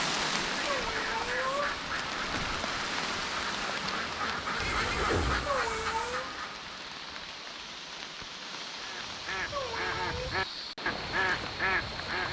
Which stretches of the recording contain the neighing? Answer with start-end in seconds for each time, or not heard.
4.6-5.5.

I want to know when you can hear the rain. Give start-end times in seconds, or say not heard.
0.0-12.2.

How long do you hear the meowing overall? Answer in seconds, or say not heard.
3 s.